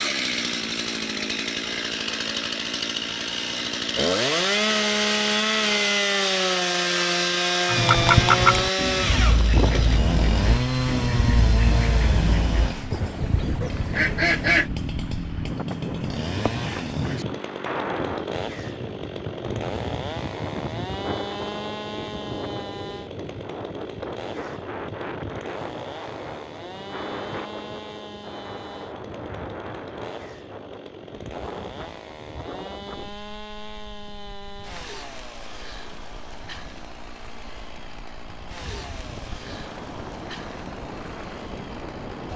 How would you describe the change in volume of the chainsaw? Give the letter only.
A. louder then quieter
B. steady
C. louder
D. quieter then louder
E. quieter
E.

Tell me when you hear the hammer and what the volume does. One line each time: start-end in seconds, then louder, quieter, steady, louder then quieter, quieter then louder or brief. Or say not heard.
not heard.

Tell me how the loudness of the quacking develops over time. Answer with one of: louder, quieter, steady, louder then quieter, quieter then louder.
quieter.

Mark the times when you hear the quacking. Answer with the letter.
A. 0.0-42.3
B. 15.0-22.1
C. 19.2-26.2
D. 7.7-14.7
D.